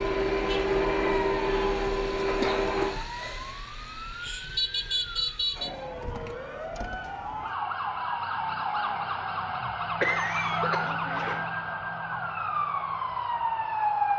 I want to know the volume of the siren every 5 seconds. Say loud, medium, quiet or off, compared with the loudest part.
medium, loud, loud.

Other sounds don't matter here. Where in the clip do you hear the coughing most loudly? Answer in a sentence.
The volume of the coughing peaks at 10 seconds.